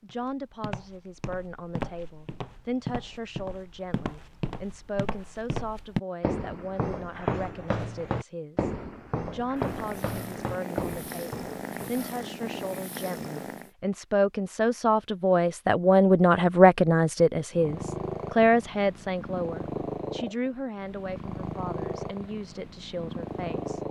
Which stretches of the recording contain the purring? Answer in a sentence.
You can hear the purring from 9.3 to 13.7 s and from 17.5 to 23.8 s.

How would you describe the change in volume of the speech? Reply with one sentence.
The loudness of the speech goes up, then down.